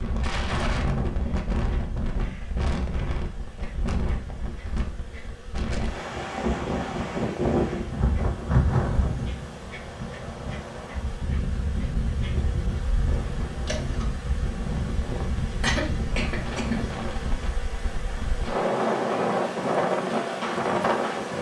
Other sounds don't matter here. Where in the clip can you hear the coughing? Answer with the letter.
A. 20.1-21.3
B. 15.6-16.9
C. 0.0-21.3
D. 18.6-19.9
B.